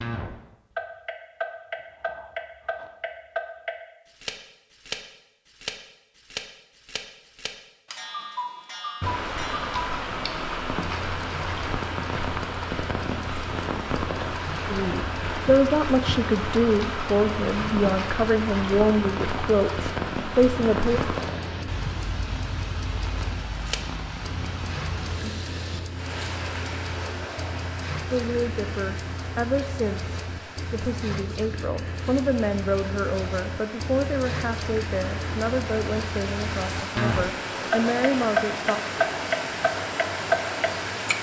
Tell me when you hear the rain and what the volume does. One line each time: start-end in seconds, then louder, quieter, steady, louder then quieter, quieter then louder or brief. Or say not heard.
9.0-41.1 quieter then louder.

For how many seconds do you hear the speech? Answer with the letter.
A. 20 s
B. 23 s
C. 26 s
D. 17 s
D.